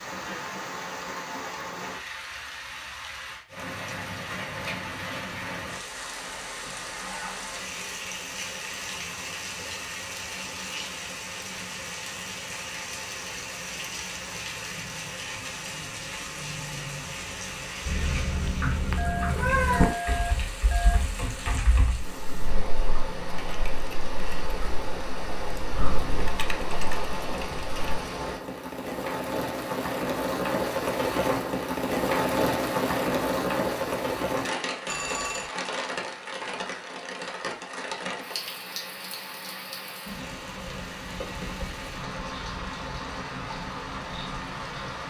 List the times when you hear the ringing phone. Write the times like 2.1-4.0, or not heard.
18.9-21.0, 34.9-35.5.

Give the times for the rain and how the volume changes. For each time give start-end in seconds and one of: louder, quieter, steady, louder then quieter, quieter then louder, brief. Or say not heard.
0.0-45.0 louder then quieter.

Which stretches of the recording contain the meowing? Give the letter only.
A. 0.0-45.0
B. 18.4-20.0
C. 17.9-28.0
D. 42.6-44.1
B.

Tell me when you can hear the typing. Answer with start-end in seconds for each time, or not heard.
17.9-28.0.